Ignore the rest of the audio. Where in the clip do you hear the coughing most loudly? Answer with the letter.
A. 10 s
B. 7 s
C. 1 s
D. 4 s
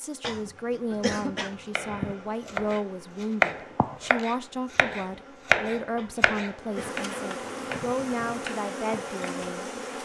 C.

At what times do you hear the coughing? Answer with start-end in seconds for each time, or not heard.
0.2-2.1, 6.0-7.8.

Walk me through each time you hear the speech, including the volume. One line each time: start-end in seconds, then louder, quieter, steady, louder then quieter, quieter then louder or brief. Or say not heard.
0.0-10.0 steady.